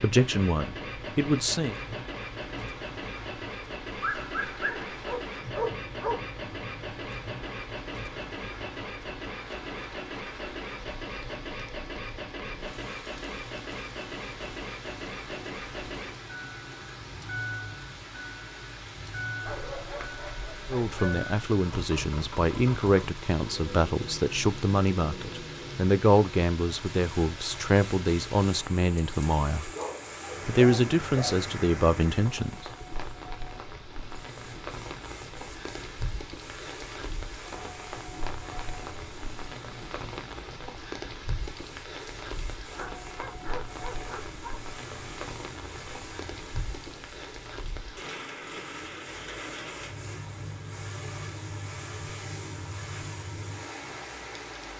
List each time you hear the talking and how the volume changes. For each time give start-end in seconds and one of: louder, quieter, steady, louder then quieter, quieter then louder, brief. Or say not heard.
0.0-1.8 brief
20.7-29.7 steady
30.4-32.6 brief.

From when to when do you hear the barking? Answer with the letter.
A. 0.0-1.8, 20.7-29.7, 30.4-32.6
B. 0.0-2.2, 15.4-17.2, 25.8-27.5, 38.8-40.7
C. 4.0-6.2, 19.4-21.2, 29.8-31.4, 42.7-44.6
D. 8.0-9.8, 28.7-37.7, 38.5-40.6
C.